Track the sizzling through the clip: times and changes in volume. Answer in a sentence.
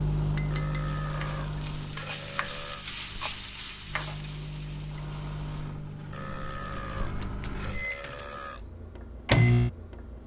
You can hear the sizzling from 0.0 to 5.7 s, getting louder then quieter.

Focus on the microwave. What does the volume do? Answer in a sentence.
The volume of the microwave goes down, then up.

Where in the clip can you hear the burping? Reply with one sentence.
The burping can be heard from 0.5 to 2.9 s and from 6.1 to 8.7 s.